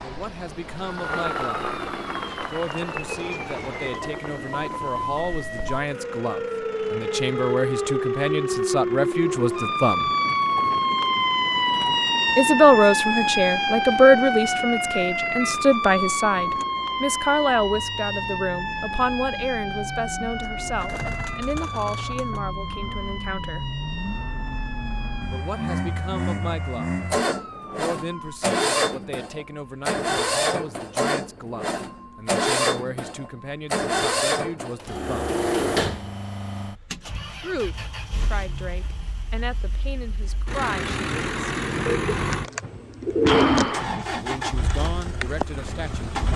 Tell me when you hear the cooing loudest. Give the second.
43 s.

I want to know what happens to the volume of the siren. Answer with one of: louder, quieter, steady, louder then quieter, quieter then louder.
louder then quieter.